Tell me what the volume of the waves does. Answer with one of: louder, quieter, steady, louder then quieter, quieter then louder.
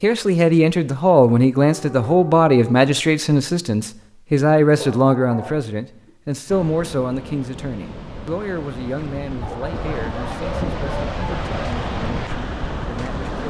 louder.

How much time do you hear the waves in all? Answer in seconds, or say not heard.
7 s.